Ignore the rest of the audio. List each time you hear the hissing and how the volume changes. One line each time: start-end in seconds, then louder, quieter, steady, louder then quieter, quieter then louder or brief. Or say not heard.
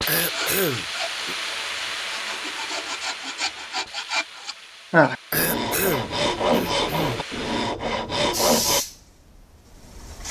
0.0-10.2 quieter then louder.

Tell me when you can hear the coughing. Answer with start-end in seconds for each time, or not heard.
0.1-1.4, 5.3-7.2.